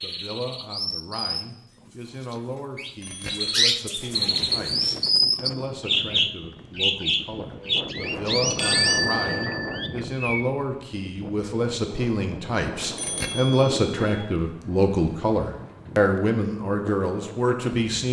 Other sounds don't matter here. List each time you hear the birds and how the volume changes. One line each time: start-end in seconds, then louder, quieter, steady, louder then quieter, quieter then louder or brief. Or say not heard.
0.0-10.4 louder then quieter.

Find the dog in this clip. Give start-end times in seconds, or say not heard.
not heard.